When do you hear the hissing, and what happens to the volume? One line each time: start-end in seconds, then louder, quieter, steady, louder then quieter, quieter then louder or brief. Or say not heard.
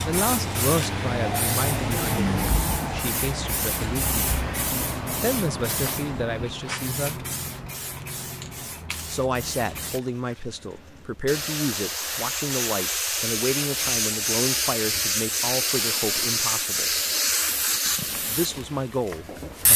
0.0-19.7 quieter then louder.